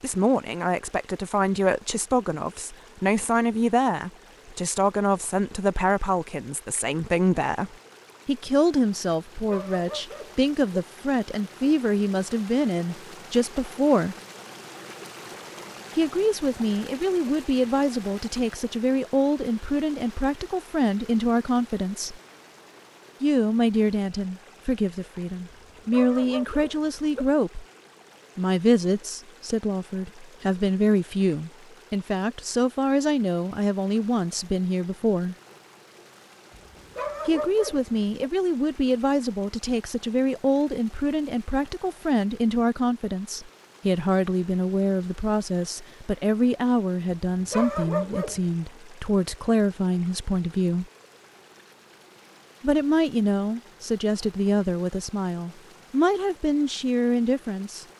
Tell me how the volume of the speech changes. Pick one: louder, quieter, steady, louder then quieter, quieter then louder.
steady.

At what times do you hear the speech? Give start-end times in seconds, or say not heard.
0.0-14.2, 15.9-22.2, 23.2-27.6, 28.4-35.4, 37.2-50.9, 52.6-57.9.